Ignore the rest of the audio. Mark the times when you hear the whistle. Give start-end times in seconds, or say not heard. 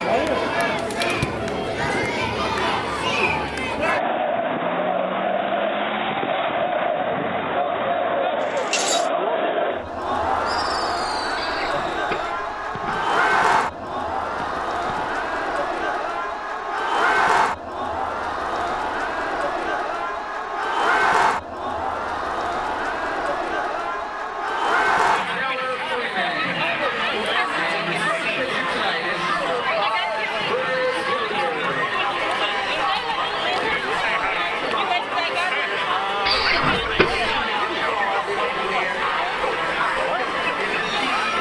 not heard.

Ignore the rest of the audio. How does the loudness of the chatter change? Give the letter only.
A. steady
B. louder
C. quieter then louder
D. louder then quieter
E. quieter
A.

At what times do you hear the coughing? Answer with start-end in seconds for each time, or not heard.
11.3-13.1, 36.2-37.4.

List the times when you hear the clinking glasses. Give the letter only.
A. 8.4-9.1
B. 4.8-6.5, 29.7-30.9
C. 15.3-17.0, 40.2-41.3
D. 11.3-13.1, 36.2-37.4
A.